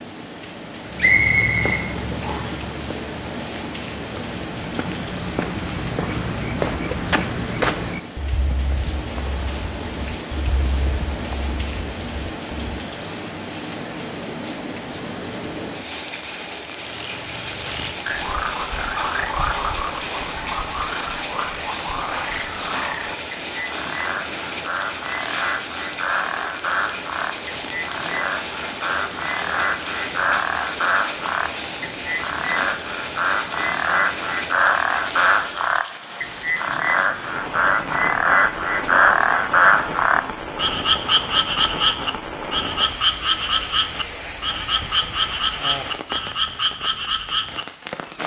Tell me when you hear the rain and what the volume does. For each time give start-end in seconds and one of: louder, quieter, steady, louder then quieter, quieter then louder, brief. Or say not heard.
0.0-48.2 steady.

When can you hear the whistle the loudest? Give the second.
1 s.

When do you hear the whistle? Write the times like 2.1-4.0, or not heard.
0.9-2.6.